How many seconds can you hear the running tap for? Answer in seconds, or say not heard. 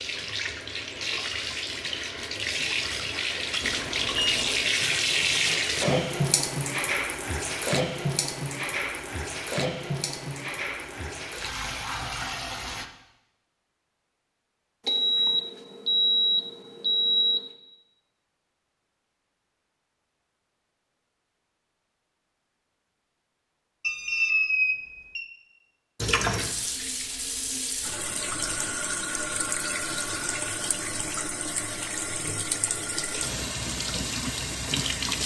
22 s.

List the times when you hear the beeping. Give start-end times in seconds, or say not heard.
3.6-4.7, 14.8-17.5, 23.8-25.2.